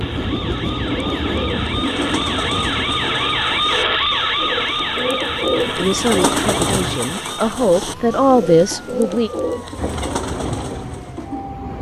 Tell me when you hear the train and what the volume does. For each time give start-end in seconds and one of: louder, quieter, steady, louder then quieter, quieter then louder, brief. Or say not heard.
0.0-7.0 quieter then louder
9.8-11.7 brief.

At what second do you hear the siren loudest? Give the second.
4 s.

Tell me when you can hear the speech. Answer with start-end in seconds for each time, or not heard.
5.8-9.3.